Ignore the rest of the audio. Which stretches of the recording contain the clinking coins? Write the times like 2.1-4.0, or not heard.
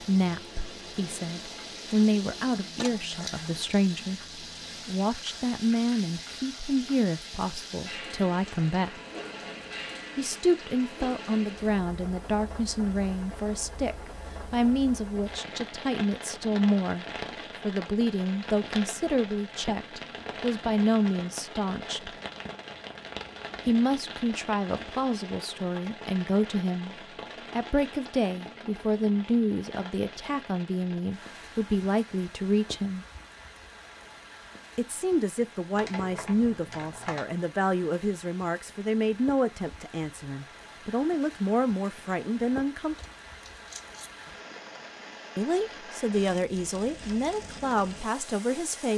2.8-3.5, 43.0-44.1.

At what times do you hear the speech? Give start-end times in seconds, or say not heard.
0.0-9.0, 10.2-22.1, 23.6-33.0, 34.8-43.0, 45.4-48.9.